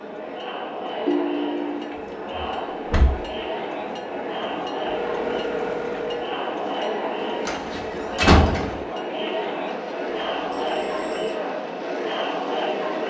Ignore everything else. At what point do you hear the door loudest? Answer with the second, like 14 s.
8 s.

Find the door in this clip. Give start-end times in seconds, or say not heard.
1.9-3.4, 7.5-8.8.